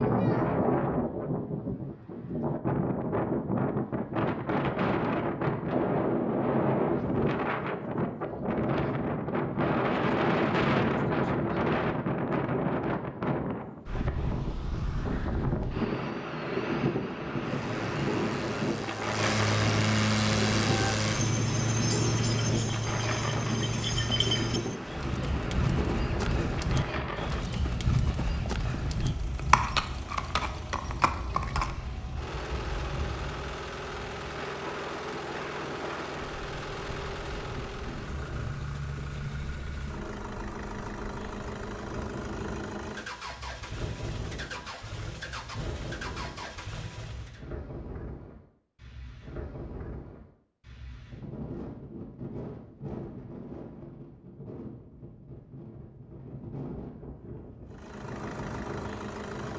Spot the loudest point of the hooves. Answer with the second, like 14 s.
30 s.